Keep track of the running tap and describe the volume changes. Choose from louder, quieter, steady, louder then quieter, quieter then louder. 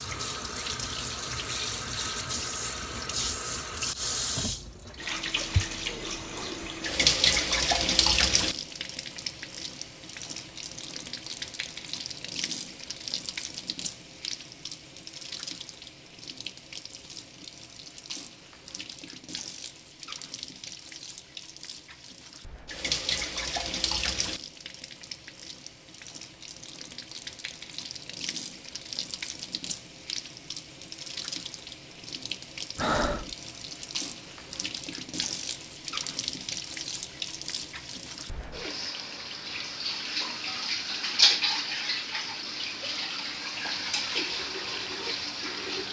quieter then louder.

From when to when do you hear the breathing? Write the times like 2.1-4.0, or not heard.
32.8-33.4.